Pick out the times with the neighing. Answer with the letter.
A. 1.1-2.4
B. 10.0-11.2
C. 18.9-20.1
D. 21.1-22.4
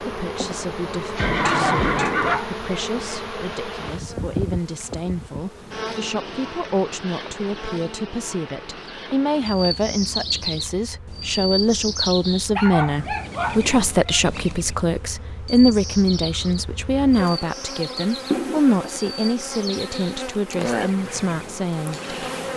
A.